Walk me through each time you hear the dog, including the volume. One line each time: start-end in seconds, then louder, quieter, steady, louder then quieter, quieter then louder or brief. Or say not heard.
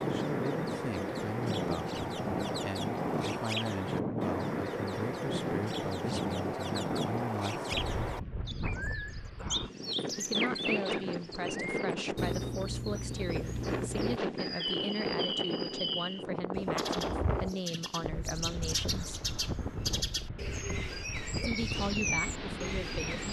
not heard.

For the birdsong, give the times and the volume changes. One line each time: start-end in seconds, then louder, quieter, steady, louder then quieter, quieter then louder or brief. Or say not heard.
0.0-23.2 steady.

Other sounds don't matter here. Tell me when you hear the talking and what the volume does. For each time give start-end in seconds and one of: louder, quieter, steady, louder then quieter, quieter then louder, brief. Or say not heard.
0.1-8.0 steady
10.1-19.2 steady
21.4-23.2 brief.